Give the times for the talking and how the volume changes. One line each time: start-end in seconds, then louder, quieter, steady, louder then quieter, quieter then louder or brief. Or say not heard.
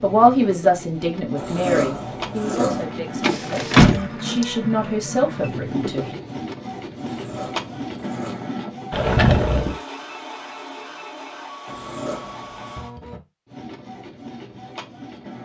0.0-6.2 quieter then louder.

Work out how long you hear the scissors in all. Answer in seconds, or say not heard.
4 s.